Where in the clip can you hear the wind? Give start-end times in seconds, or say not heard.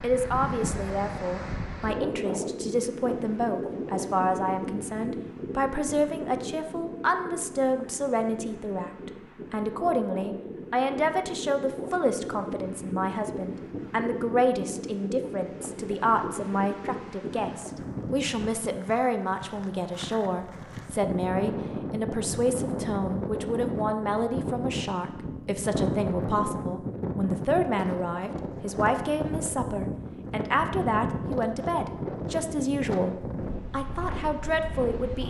0.0-35.2.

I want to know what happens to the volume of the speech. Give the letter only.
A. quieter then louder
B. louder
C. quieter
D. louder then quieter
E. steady
E.